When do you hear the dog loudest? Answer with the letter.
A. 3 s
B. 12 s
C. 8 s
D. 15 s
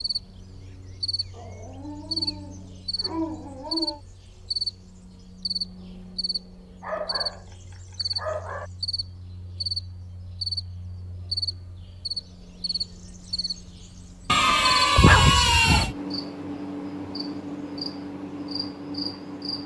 D.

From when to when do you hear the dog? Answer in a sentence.
The dog can be heard from 1.3 to 4.0 s, from 6.8 to 8.7 s and from 14.3 to 15.9 s.